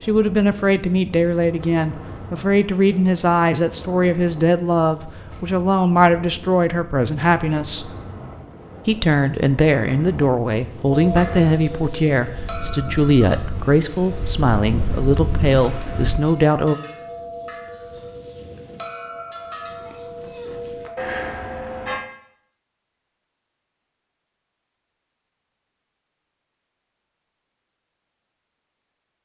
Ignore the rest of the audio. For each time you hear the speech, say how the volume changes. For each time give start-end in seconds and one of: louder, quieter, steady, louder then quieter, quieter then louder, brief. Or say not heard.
0.0-7.9 steady
8.8-16.8 steady.